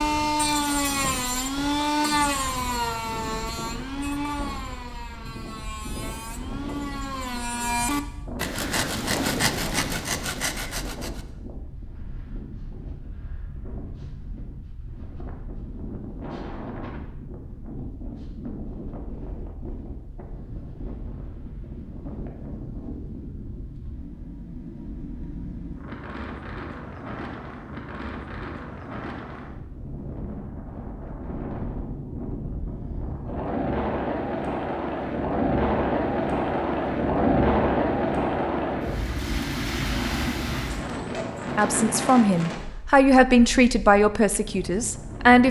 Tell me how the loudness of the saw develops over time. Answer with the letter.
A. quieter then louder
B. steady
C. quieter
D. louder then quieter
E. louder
A.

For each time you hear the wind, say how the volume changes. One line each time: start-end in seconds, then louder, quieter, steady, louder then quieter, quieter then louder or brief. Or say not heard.
0.0-45.4 louder.